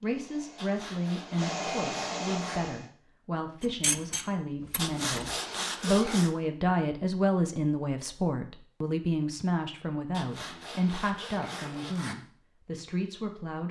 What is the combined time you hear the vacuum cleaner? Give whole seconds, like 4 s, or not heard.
3 s.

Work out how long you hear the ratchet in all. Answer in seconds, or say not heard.
2 s.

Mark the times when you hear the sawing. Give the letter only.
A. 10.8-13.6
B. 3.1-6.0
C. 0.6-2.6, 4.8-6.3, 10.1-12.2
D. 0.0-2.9
C.